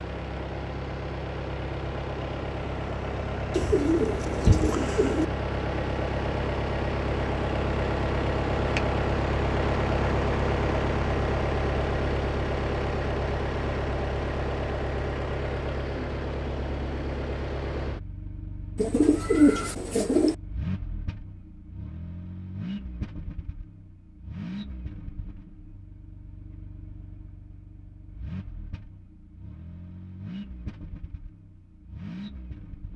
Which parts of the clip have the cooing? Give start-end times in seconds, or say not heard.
3.5-5.2, 18.8-20.4.